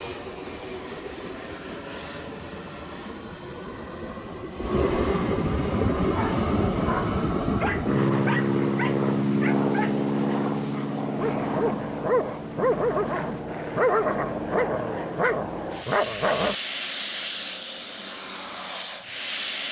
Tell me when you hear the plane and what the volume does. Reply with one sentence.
You can hear the plane from 0.0 to 19.6 s, getting louder then quieter.